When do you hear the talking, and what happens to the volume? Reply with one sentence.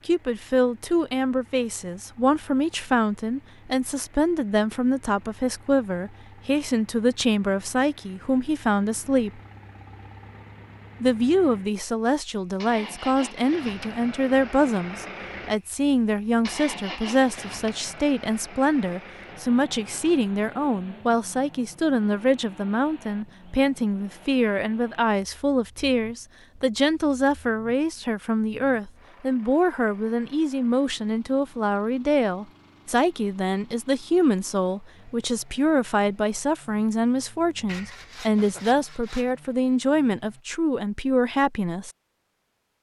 You can hear the talking from 0.1 to 9.4 s, at a steady volume; and from 11.0 to 41.9 s, at a steady volume.